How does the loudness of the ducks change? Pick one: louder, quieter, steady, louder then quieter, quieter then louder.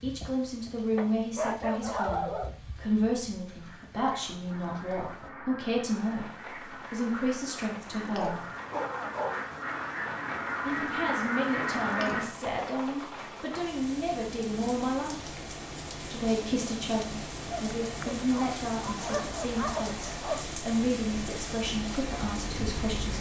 louder.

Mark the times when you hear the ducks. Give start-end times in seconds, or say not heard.
3.3-12.2.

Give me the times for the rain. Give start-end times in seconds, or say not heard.
0.0-23.1.